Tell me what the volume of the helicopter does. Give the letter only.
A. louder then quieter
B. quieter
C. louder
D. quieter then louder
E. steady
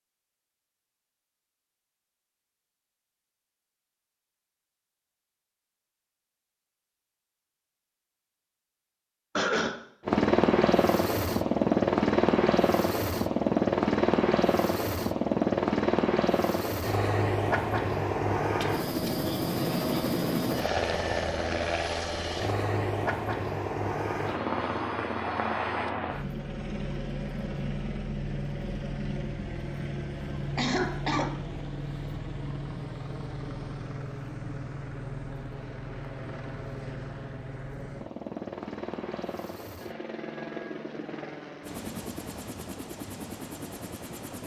B.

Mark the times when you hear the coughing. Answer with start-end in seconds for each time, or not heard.
9.3-9.8, 18.6-19.2, 30.6-31.4.